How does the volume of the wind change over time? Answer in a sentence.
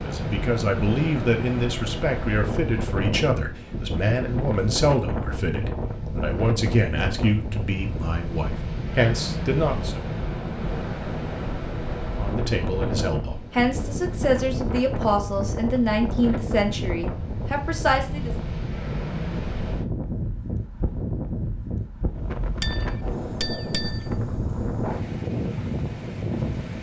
The volume of the wind stays about the same.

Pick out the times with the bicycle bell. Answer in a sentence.
You can hear the bicycle bell from 22.6 to 24.1 s.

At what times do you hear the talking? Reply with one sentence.
You can hear the talking from 0.0 to 10.0 s and from 12.1 to 18.3 s.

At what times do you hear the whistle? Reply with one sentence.
The whistle can't be heard in this clip.